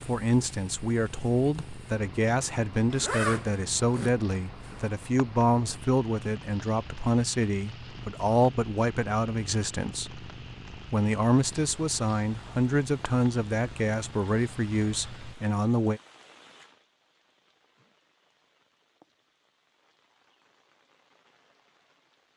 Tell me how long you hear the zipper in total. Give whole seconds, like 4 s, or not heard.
2 s.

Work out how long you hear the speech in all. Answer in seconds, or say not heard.
15 s.